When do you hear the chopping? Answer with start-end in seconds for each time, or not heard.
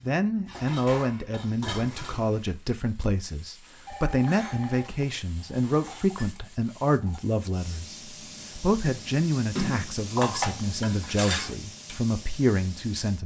not heard.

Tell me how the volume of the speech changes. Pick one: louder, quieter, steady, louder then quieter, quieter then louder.
steady.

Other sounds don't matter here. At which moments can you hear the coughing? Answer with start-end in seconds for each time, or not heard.
not heard.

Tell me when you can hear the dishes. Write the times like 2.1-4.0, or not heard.
0.5-2.4, 4.8-7.2, 9.6-11.6.